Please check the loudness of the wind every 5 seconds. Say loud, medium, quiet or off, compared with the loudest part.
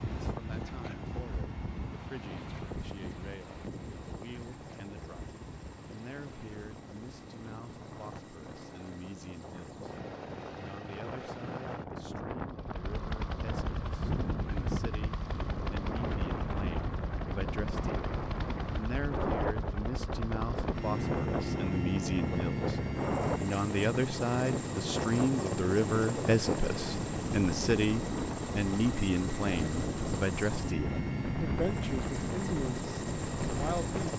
medium, quiet, loud, loud, loud, loud, loud.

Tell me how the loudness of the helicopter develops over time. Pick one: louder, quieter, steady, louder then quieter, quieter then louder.
louder.